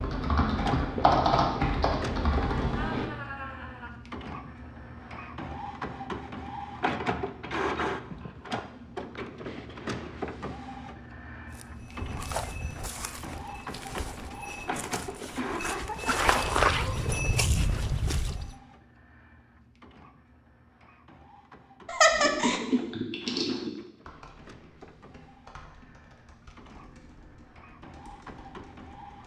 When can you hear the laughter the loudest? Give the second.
22 s.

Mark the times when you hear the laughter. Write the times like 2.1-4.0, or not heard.
2.8-4.0, 15.3-17.1, 21.9-22.6.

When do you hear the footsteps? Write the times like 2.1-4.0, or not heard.
11.5-18.6.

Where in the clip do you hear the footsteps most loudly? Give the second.
17 s.